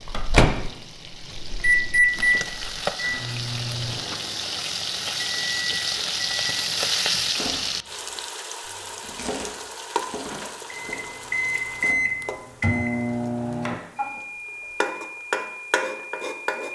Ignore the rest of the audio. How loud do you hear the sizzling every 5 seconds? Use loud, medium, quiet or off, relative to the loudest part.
medium, loud, medium, loud.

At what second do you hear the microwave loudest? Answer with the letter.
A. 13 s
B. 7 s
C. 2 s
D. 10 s
C.